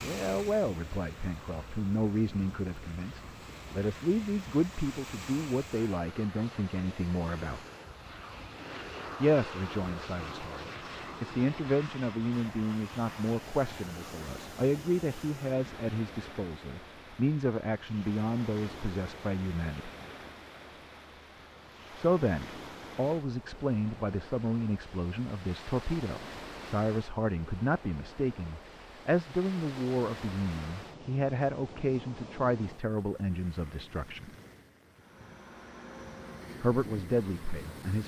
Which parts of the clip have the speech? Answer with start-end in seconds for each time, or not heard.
0.0-7.7, 9.2-19.9, 21.9-34.3, 36.6-38.0.